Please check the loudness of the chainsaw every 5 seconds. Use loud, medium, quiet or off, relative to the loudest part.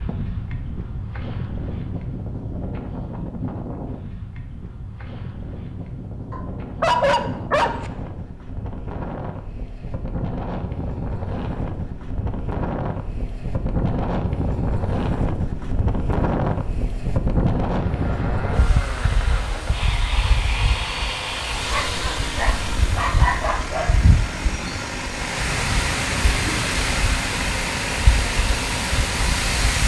off, off, off, loud, loud, loud.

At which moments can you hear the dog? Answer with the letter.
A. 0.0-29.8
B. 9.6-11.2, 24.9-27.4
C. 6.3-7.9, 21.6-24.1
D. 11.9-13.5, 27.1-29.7
C.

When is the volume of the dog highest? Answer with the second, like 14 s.
7 s.